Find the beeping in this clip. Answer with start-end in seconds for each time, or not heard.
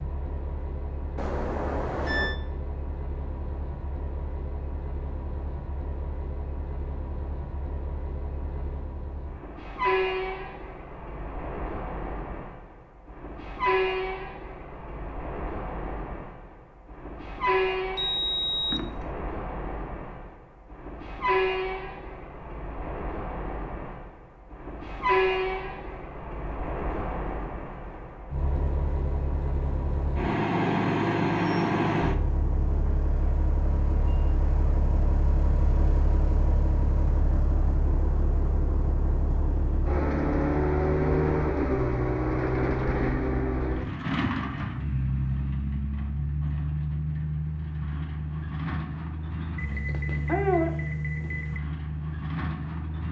1.1-2.4, 17.9-19.1, 49.5-51.6.